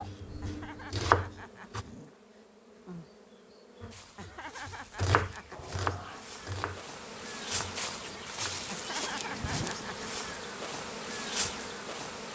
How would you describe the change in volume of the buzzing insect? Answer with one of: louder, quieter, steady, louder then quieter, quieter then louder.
louder.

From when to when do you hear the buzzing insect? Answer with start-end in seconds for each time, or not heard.
0.0-12.3.